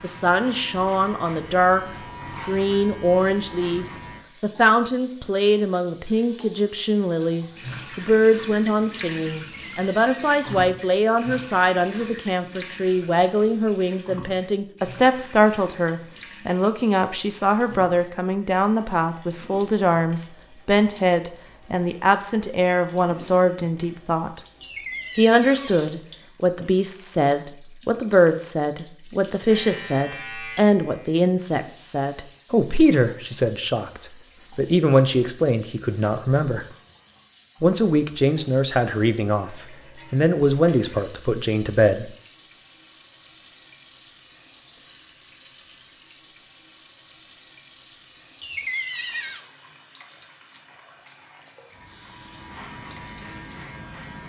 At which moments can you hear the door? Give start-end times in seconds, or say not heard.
9.3-10.8, 24.6-25.9, 48.4-49.5.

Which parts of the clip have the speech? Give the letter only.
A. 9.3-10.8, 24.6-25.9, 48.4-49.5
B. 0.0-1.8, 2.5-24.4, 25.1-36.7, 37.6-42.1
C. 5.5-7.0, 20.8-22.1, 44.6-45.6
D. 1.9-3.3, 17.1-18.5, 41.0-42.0
B.